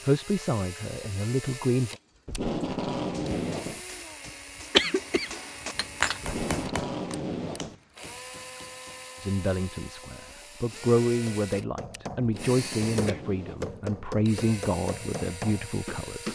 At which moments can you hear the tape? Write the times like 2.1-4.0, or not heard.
2.2-3.8, 6.2-7.8, 12.2-13.8.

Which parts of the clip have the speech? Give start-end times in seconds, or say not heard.
0.0-1.9, 9.2-16.3.